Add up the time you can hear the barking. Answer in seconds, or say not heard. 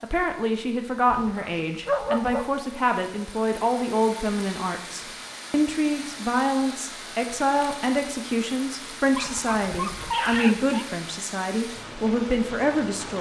3 s.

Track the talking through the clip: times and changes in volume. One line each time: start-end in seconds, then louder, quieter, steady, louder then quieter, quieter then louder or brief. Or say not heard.
0.0-13.1 steady.